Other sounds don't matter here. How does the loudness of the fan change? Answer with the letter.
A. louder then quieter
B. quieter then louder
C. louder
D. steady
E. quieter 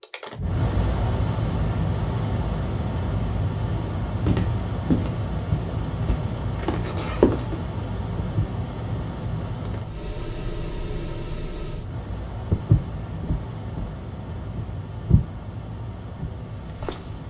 E.